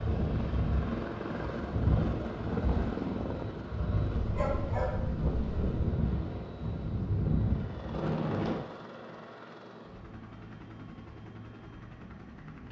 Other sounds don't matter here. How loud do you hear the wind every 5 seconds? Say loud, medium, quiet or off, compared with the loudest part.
loud, loud, off.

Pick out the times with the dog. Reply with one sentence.
You can hear the dog from 4.2 to 5.9 s.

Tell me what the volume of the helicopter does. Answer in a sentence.
The loudness of the helicopter goes down.